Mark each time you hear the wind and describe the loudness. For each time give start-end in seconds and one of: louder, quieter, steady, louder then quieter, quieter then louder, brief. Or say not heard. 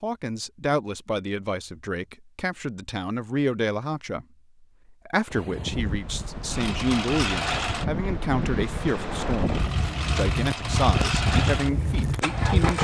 5.3-12.8 louder.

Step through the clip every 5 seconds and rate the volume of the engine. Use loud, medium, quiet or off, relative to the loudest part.
off, loud, loud.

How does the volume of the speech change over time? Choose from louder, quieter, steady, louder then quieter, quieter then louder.
steady.